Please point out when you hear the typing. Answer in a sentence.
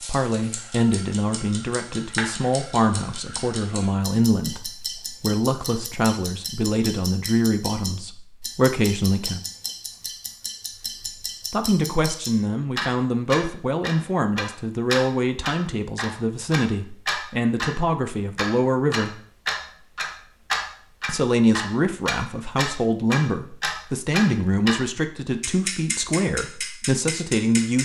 The typing can't be heard in this clip.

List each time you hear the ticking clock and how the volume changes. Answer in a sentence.
You can hear the ticking clock from 0.0 to 24.8 s, getting louder; and briefly from 25.4 to 27.8 s.